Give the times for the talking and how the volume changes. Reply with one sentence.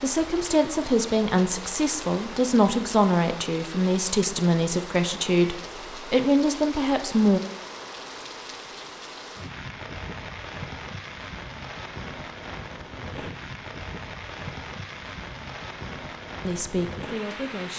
You can hear the talking from 0.0 to 7.4 s, at a steady volume; and briefly from 16.4 to 17.7 s.